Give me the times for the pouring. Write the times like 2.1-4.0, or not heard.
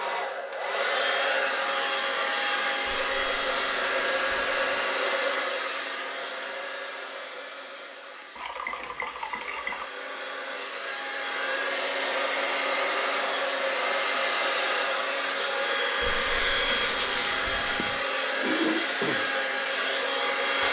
2.9-4.8, 8.3-9.9, 16.0-18.1.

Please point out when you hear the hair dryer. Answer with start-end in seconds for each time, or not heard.
0.0-20.6.